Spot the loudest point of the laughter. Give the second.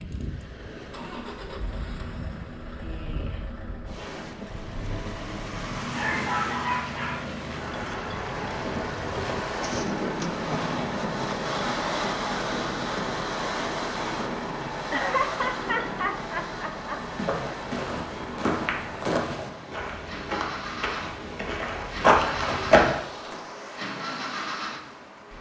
15 s.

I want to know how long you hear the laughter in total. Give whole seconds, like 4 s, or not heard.
3 s.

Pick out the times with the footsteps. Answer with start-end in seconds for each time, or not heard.
17.0-23.4.